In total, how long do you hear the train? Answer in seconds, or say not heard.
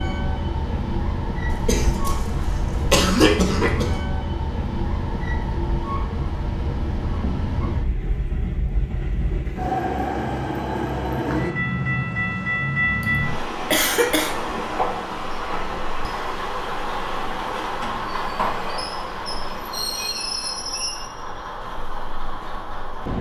23 s.